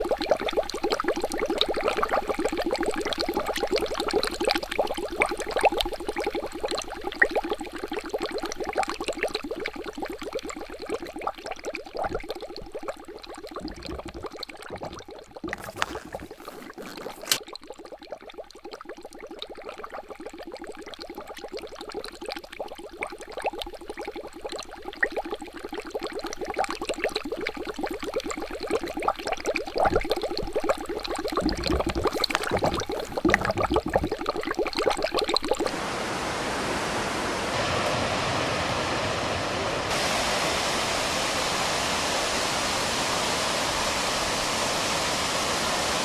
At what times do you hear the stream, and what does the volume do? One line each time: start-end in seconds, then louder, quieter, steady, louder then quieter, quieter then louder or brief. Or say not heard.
0.0-46.0 quieter then louder.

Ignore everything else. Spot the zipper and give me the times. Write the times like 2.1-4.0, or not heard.
15.5-17.4, 32.1-33.5.